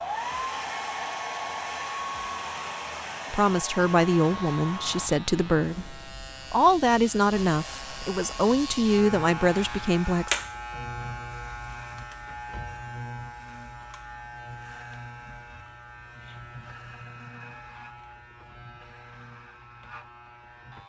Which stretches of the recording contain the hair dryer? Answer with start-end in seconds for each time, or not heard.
0.0-5.1, 7.3-9.8.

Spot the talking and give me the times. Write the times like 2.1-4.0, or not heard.
3.3-10.3.